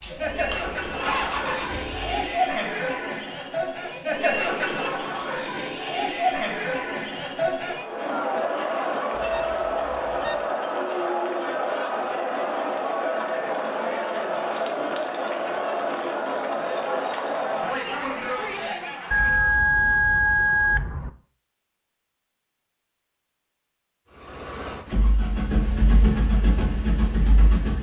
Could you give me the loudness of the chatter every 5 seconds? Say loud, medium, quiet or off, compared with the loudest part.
loud, loud, loud, loud, off, off.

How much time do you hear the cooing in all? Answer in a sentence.
The cooing can't be heard in this clip.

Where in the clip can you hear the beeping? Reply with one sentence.
The beeping can be heard from 9.1 to 10.6 s and from 19.1 to 21.1 s.